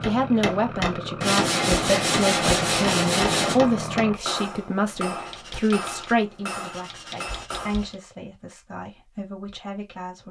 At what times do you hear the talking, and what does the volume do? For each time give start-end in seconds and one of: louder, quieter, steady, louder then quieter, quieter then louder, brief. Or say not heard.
0.1-10.2 quieter.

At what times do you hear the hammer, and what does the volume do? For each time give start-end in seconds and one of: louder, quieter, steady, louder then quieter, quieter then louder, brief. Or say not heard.
0.0-8.0 quieter.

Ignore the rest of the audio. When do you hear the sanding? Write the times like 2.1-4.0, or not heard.
1.2-3.5, 5.2-8.0.